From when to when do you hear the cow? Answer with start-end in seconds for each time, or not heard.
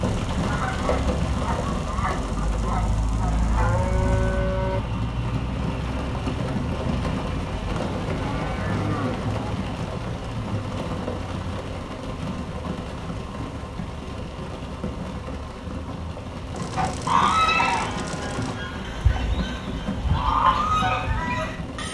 3.2-4.8, 7.7-9.8, 16.6-18.6.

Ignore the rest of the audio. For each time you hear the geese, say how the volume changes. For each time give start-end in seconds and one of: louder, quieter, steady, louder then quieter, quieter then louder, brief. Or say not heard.
0.0-4.4 steady
16.8-21.8 quieter then louder.